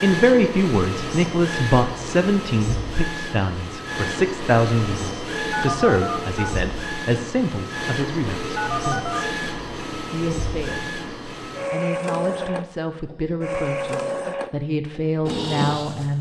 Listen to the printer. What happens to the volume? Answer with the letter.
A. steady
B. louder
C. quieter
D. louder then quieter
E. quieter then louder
A.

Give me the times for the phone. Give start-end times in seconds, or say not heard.
5.3-6.6, 8.4-9.4.